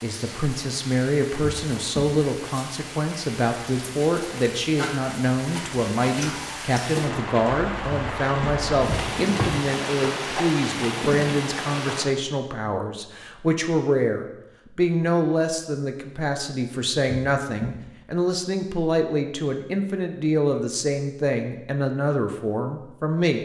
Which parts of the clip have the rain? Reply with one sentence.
You can hear the rain from 0.0 to 12.1 s.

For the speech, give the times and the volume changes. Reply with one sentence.
You can hear the speech from 0.0 to 23.4 s, at a steady volume.